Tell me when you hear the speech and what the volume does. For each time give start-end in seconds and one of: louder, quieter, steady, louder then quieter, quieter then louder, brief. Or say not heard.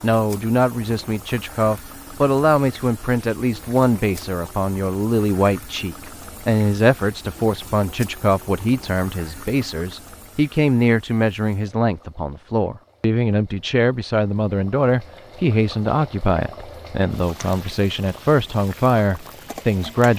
0.0-20.1 steady.